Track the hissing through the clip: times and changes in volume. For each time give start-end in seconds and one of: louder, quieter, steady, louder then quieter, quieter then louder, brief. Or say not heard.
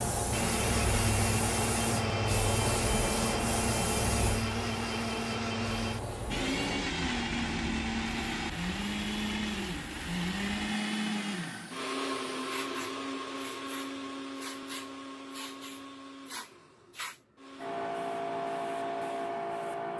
0.0-19.9 quieter then louder.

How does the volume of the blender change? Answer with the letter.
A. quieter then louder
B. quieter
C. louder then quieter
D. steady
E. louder
B.